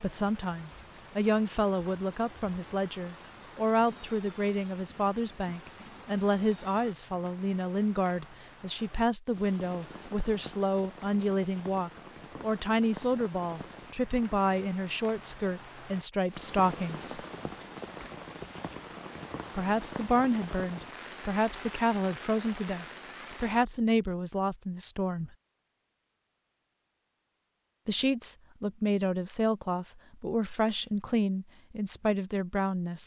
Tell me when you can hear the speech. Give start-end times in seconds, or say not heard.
0.0-17.2, 19.6-25.3, 27.9-33.0.